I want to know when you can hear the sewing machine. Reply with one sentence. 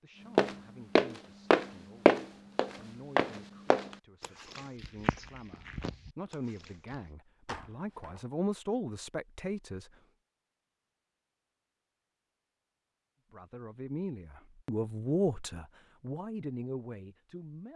You can't hear the sewing machine here.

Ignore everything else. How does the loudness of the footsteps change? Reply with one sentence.
The loudness of the footsteps goes down.